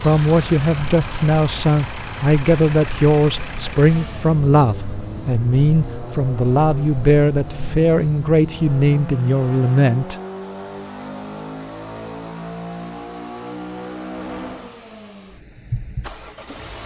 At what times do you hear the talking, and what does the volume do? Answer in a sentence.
The talking can be heard from 0.0 to 10.2 s, at a steady volume.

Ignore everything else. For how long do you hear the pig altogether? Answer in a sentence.
You can't hear the pig here.